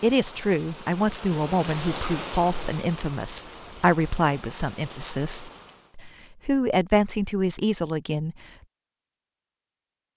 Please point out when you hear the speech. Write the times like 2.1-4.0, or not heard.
0.0-8.3.